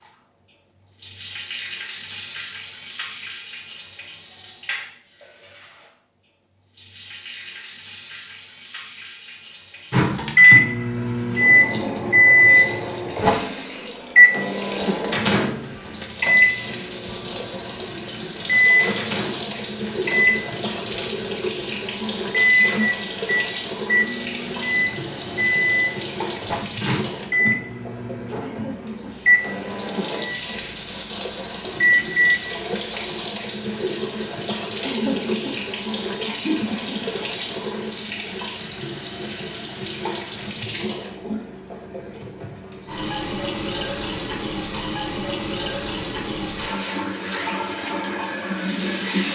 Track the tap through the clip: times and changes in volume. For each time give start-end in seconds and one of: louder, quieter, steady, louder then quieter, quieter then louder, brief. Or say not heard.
0.0-49.3 louder.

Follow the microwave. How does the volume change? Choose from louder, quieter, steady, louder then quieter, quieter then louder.
quieter.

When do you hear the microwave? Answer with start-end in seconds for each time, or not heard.
9.9-33.1.